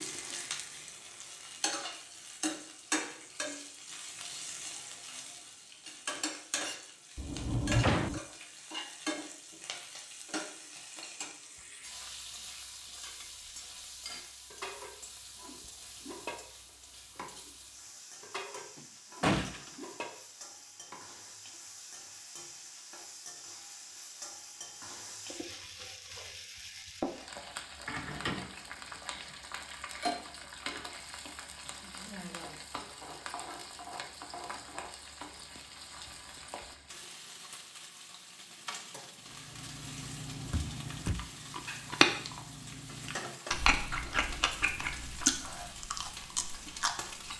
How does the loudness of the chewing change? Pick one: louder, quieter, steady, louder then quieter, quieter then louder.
louder then quieter.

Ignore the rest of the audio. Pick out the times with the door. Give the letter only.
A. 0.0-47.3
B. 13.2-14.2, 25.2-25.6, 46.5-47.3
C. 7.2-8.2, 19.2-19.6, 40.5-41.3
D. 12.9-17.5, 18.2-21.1
C.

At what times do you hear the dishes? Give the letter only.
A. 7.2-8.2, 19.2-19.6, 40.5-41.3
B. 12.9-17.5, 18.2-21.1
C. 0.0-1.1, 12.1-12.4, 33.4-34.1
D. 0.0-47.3
B.